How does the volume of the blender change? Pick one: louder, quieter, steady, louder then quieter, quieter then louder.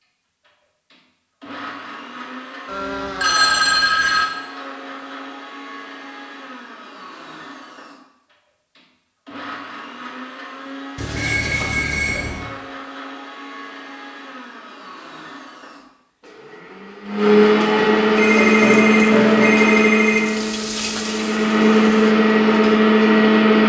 louder.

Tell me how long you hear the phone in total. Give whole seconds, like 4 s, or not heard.
5 s.